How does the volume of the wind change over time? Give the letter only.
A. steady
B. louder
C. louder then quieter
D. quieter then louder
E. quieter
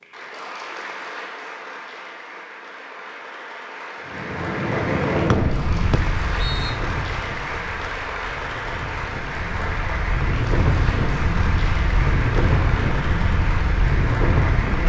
D.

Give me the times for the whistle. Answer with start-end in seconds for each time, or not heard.
5.3-6.8.